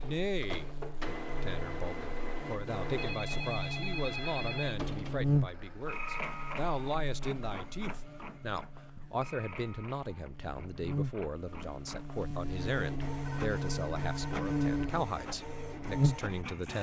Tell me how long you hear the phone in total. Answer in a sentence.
You can hear the phone for 3 seconds altogether.